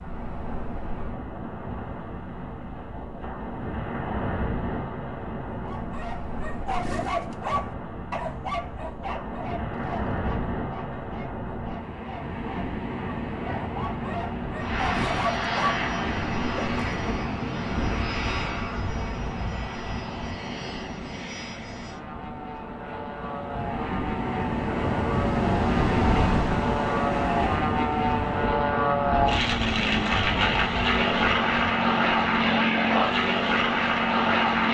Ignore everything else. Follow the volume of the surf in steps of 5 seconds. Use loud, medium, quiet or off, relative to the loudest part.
medium, medium, medium, medium, medium, loud, medium.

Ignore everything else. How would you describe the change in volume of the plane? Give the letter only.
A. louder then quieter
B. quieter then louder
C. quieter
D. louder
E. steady
B.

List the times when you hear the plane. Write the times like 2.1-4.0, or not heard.
14.6-34.7.